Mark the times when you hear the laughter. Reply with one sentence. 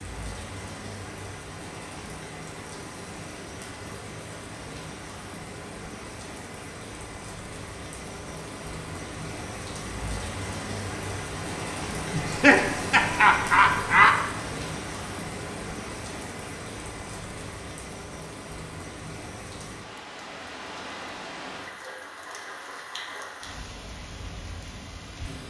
The laughter can be heard from 12.1 to 14.1 s.